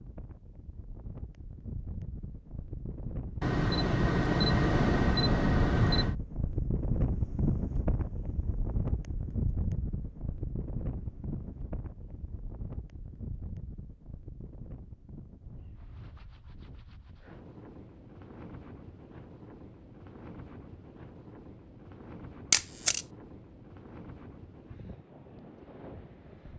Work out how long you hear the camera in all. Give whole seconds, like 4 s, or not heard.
3 s.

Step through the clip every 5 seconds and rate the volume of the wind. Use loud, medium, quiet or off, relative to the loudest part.
medium, loud, medium, quiet, quiet, quiet.